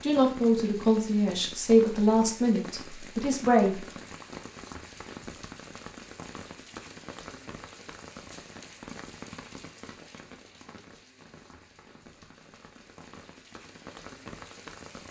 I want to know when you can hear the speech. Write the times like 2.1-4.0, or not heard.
0.0-3.8.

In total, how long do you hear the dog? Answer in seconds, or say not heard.
not heard.